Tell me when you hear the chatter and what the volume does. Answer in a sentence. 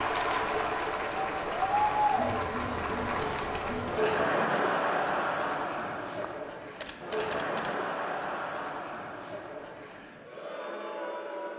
The chatter can be heard from 0.0 to 11.5 s, getting quieter.